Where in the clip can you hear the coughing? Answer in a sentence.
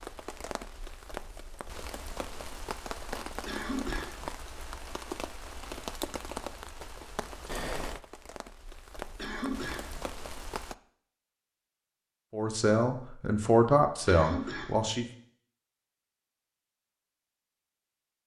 You can hear the coughing from 3.5 to 4.3 s, from 9.2 to 10.0 s and from 14.1 to 14.9 s.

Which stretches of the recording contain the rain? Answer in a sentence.
The rain can be heard from 0.0 to 10.8 s.